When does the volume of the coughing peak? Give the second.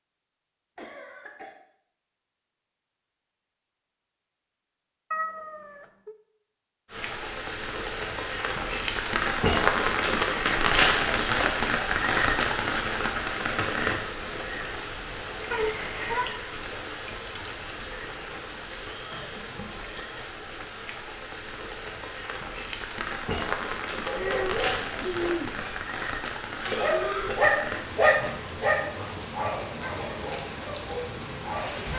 27 s.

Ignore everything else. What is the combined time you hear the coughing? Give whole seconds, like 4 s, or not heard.
2 s.